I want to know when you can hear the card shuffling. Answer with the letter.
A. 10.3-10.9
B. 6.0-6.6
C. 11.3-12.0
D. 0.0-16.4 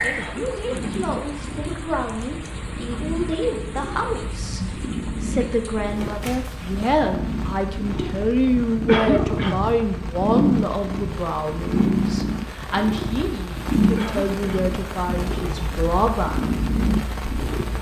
B.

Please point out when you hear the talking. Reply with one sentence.
You can hear the talking from 0.0 to 16.4 s.